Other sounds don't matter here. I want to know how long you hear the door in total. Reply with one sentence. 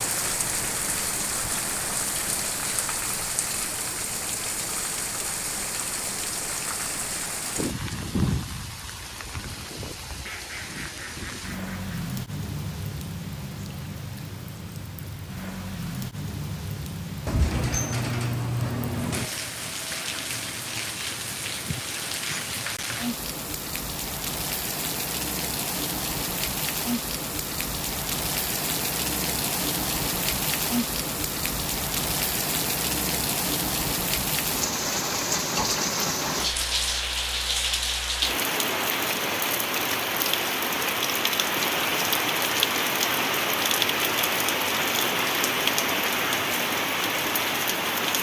You can hear the door for 2 seconds altogether.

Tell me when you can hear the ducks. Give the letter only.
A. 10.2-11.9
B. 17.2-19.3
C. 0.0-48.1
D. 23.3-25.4
A.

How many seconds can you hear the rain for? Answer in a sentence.
You can hear the rain for 48 seconds altogether.